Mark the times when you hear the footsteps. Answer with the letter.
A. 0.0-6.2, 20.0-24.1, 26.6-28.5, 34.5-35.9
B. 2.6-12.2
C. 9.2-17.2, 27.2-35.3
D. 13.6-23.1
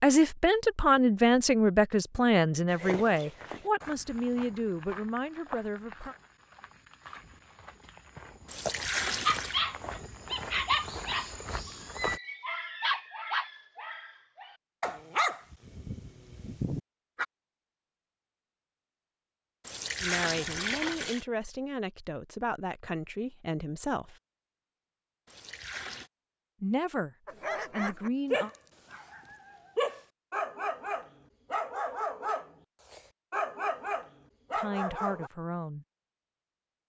B.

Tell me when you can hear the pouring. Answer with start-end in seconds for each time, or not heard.
8.4-9.6, 19.6-21.2, 25.2-26.1.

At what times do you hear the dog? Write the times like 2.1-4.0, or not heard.
9.2-17.2, 27.2-35.3.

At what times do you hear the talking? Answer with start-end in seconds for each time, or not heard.
0.0-6.2, 20.0-24.1, 26.6-28.5, 34.5-35.9.